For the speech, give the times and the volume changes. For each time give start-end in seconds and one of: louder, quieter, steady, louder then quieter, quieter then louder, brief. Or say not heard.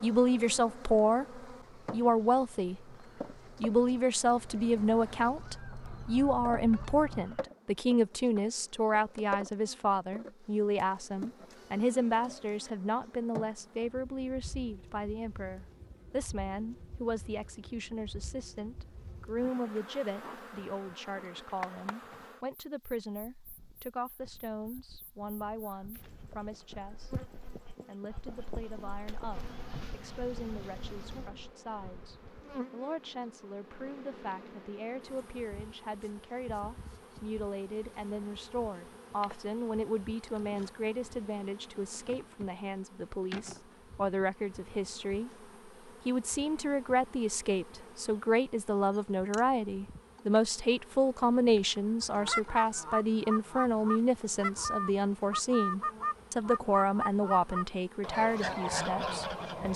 0.0-3.0 brief
3.6-27.1 quieter
27.9-59.7 louder.